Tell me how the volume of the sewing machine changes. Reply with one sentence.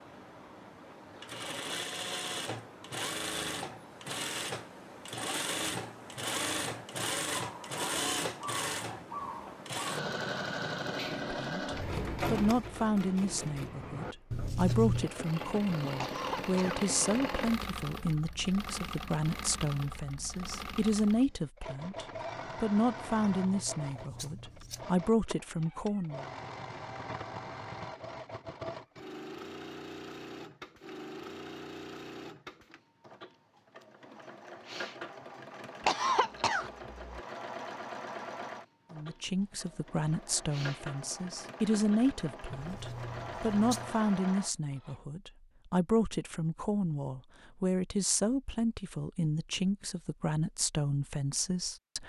The loudness of the sewing machine goes down.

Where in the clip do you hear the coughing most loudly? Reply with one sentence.
The volume of the coughing peaks at 36 seconds.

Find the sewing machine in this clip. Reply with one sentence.
You can hear the sewing machine from 0.0 to 45.0 s.